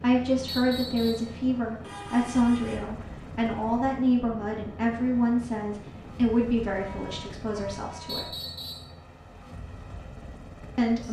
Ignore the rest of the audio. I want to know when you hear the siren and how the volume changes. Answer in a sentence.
You can't hear the siren here.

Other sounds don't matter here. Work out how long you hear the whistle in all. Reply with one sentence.
You can hear the whistle for 2 seconds altogether.